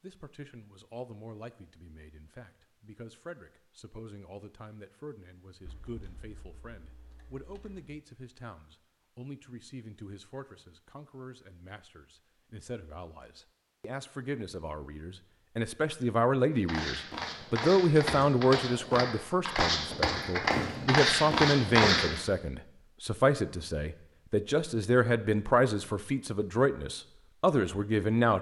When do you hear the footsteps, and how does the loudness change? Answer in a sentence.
You can hear the footsteps from 16.6 to 22.2 s, getting louder.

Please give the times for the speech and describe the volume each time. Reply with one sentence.
You can hear the speech from 0.0 to 28.3 s, getting louder.